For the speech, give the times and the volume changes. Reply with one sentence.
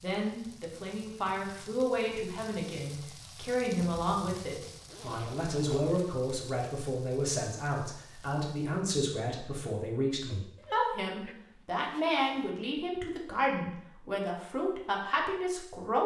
The speech can be heard from 0.0 to 16.0 s, at a steady volume.